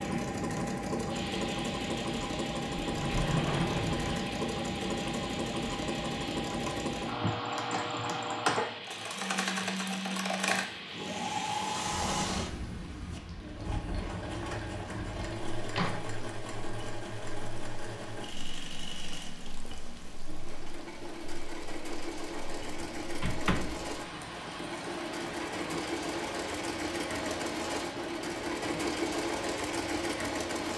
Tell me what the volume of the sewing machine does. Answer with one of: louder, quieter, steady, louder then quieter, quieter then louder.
quieter then louder.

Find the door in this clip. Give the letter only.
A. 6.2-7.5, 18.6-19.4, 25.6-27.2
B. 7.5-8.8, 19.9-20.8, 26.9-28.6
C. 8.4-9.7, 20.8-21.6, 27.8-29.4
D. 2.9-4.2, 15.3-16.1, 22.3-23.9
D.